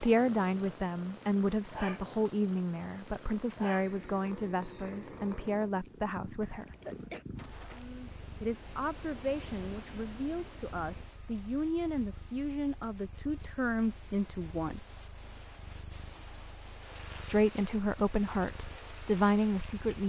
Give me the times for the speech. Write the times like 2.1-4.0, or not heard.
0.0-6.8, 8.4-14.8, 17.1-20.0.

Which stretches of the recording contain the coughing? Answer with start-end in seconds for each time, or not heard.
6.4-7.2.